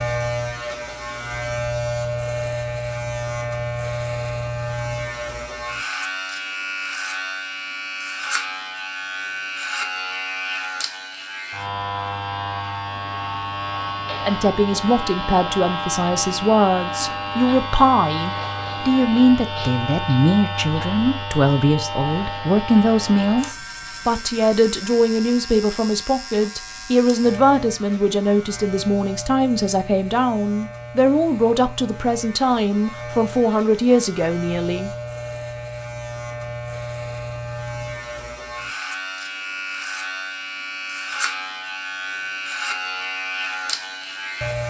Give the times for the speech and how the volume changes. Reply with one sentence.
The speech can be heard from 14.2 to 34.9 s, at a steady volume.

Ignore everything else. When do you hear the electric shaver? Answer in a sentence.
The electric shaver can be heard from 0.0 to 44.6 s.